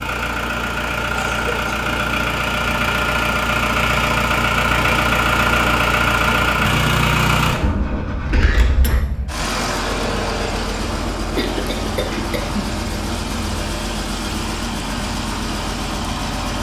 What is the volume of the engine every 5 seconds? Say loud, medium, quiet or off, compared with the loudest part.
loud, loud, medium, medium.